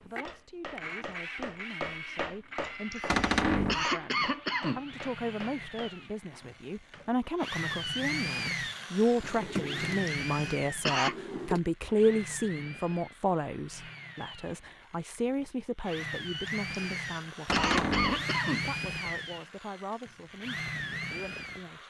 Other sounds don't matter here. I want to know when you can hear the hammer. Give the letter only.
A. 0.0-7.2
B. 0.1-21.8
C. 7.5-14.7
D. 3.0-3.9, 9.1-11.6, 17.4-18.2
A.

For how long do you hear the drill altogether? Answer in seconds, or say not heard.
22 s.